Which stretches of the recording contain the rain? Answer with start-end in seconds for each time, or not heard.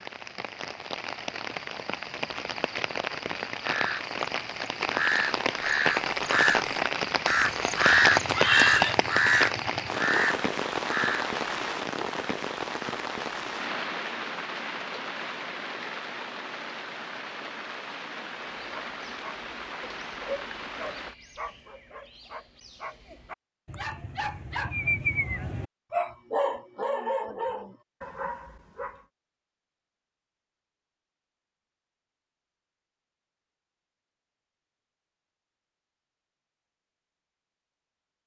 0.0-21.1.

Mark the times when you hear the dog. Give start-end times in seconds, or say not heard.
18.6-29.1.